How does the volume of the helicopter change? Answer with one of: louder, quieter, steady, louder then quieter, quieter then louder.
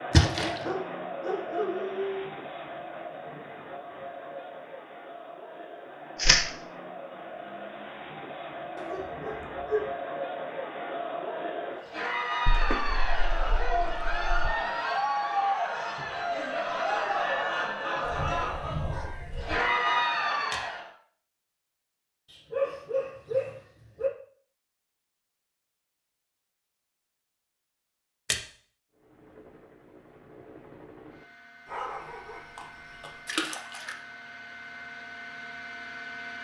louder.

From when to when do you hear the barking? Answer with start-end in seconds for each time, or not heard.
0.6-2.2, 8.8-9.8, 18.0-19.6, 22.2-24.1, 31.6-33.4.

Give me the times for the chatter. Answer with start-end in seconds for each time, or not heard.
0.0-20.9.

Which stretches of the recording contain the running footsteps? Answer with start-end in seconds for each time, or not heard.
not heard.